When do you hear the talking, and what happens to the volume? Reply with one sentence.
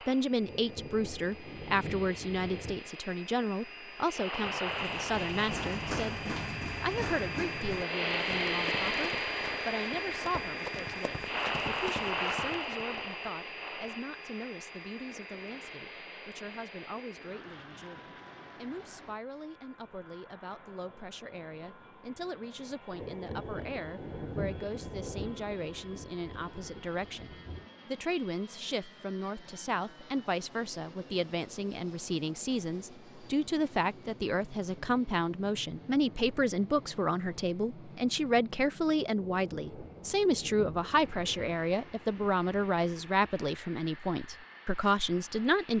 You can hear the talking from 0.1 to 45.7 s, getting quieter then louder.